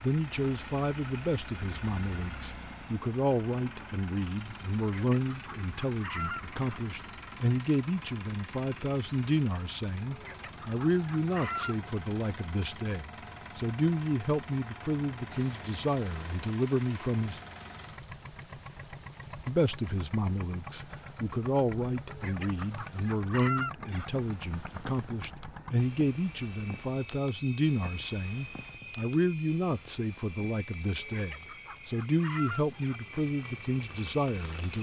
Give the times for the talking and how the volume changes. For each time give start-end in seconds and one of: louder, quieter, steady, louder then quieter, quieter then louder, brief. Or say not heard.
0.0-17.4 steady
19.4-34.7 steady.